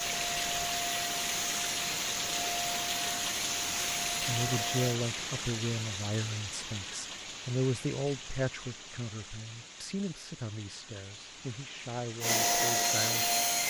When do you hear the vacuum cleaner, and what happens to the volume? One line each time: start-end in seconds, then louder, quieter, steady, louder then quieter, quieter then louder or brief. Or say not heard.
0.0-5.0 steady
12.2-13.6 brief.